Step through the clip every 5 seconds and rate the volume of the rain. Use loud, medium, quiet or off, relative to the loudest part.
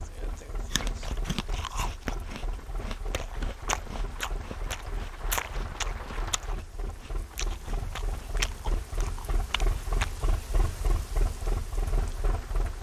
medium, loud, loud.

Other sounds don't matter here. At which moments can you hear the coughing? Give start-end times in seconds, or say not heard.
not heard.